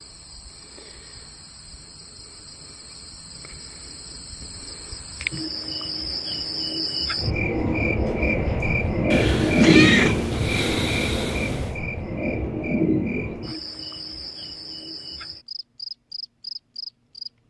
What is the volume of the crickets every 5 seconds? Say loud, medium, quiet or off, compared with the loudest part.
quiet, loud, medium, quiet.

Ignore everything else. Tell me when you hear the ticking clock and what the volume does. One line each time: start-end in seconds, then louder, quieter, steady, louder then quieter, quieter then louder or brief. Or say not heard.
not heard.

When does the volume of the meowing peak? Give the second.
10 s.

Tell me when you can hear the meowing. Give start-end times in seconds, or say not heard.
9.1-11.8.